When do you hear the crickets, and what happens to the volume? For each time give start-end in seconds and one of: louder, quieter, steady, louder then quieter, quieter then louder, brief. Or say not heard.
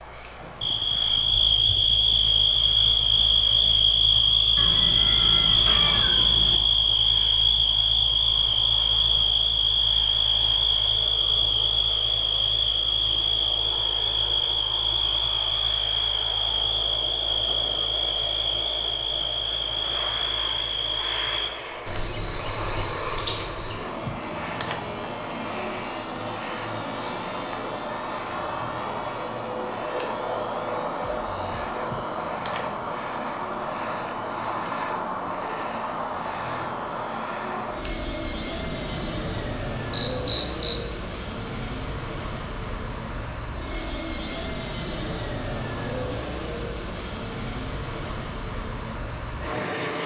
0.0-50.0 quieter.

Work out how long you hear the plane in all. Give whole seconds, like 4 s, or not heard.
50 s.